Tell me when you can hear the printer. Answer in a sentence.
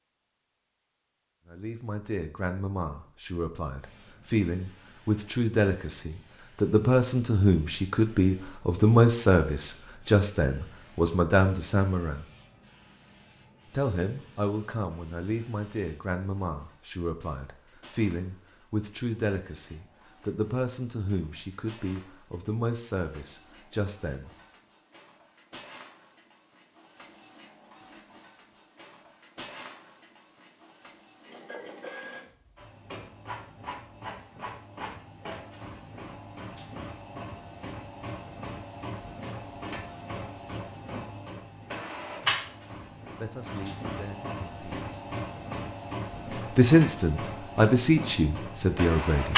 The printer can be heard from 3.8 to 49.3 s.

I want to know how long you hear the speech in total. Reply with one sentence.
You can hear the speech for 26 seconds altogether.